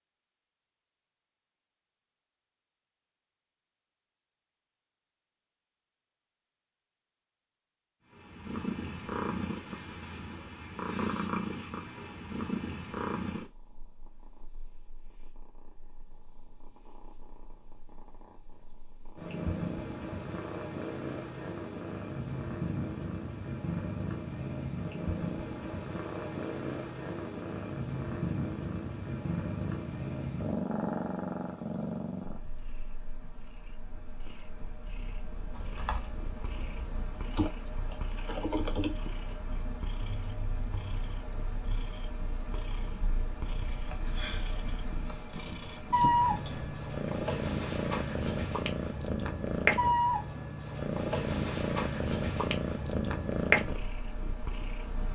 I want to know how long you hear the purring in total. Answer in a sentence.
You can hear the purring for 47 seconds altogether.